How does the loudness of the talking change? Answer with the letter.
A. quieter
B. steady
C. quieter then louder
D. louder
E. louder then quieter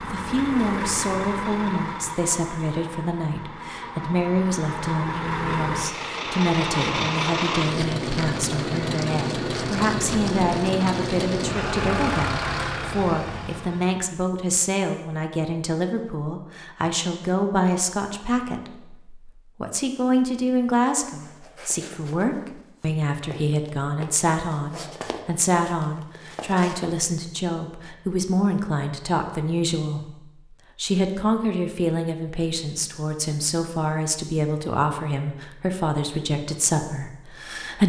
B.